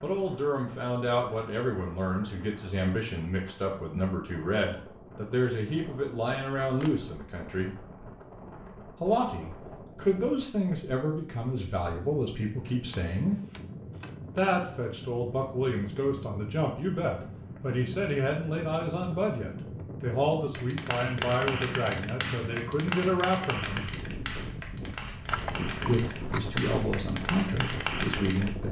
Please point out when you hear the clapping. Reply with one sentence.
The clapping can be heard from 20.5 to 28.6 s.